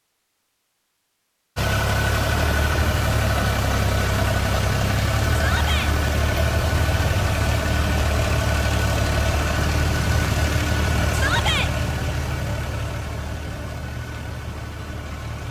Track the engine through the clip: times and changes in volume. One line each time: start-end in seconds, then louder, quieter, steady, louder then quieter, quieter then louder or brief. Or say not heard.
1.6-15.4 quieter.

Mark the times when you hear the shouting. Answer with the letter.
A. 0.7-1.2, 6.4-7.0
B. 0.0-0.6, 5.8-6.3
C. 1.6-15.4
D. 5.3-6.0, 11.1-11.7
D.